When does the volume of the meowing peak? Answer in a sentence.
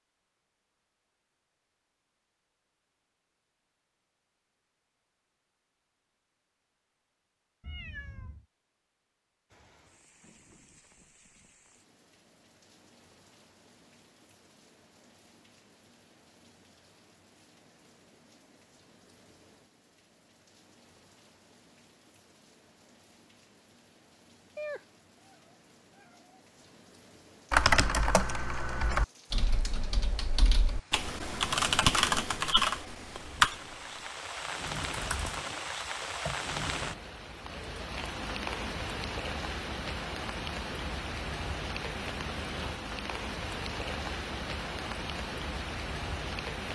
The loudest moment of the meowing is at 25 seconds.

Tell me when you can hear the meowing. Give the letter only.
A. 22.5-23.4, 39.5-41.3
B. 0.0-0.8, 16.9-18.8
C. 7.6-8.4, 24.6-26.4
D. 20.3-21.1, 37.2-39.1
C.